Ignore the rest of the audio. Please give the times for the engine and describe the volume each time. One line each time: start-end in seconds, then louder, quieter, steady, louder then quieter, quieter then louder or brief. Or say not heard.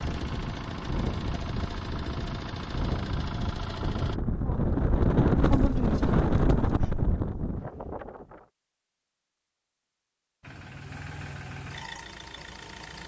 0.0-4.2 steady
10.4-13.0 brief.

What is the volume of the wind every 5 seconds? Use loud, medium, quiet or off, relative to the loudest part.
medium, loud, off.